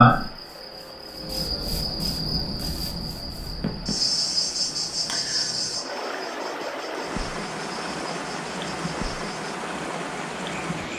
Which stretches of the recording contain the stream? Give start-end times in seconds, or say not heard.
0.0-10.9.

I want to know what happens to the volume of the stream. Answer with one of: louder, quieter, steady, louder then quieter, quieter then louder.
louder.